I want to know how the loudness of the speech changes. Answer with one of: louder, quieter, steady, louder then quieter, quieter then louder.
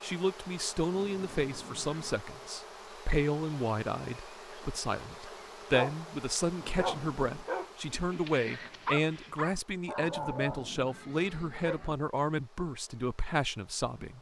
steady.